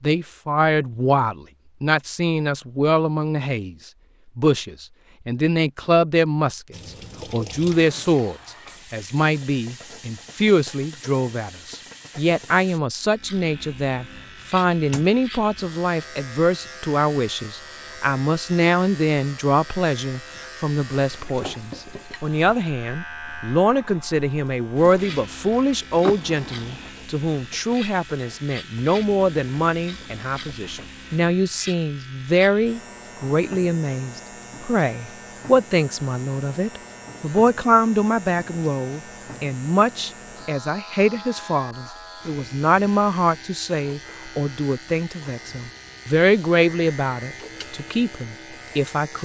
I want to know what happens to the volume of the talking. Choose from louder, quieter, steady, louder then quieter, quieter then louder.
steady.